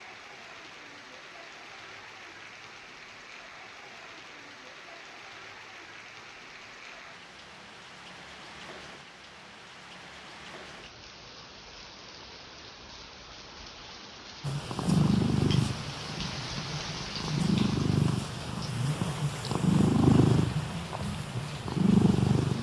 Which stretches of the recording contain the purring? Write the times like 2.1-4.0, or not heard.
14.4-22.5.